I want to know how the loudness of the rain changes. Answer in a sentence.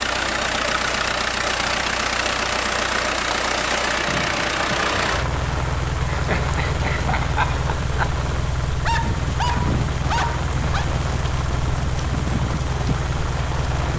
The volume of the rain stays about the same.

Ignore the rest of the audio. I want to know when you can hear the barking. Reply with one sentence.
The barking can be heard from 8.8 to 10.8 s.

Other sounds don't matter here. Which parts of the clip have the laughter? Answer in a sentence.
You can hear the laughter from 6.1 to 8.2 s.